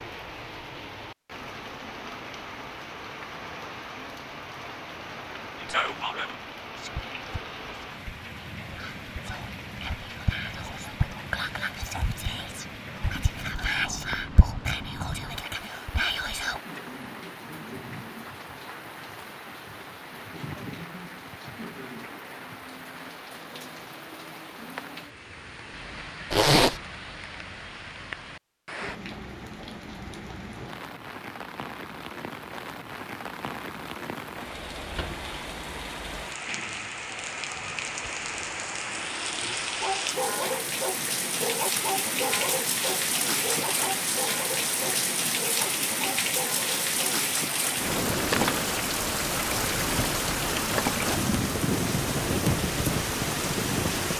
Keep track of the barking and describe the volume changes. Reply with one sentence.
The loudness of the barking goes down.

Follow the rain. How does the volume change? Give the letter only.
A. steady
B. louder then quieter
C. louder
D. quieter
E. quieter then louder
C.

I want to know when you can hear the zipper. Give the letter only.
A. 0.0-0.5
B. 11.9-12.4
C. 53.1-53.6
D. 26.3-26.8
D.